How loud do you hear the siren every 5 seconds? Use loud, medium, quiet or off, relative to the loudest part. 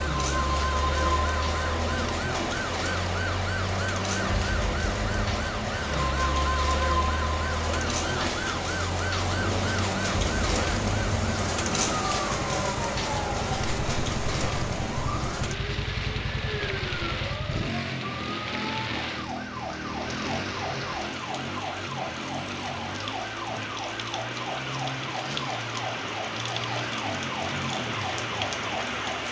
loud, loud, loud, medium, medium, medium.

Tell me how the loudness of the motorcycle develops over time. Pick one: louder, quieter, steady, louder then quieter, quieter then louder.
steady.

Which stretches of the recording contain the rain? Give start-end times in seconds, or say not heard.
0.0-29.2.